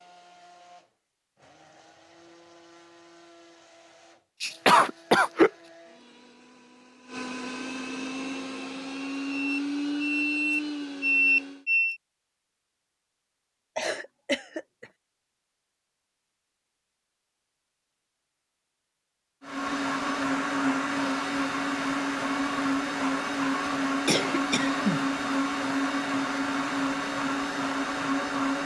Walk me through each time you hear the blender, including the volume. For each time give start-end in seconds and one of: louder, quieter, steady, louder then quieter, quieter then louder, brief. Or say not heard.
0.0-11.7 louder
19.4-28.6 steady.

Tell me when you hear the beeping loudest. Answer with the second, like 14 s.
11 s.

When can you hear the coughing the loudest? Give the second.
5 s.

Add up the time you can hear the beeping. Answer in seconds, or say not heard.
3 s.